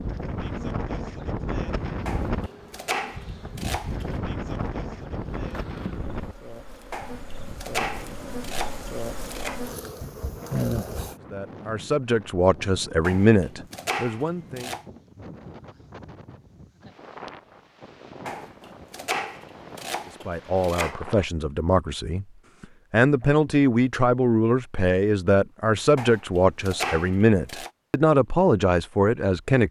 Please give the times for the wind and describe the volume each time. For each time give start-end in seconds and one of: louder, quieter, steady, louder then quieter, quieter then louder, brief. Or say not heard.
0.0-21.3 quieter.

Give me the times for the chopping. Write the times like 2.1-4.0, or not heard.
2.0-4.0, 6.9-9.6, 13.0-14.8, 18.2-20.9, 25.9-27.7.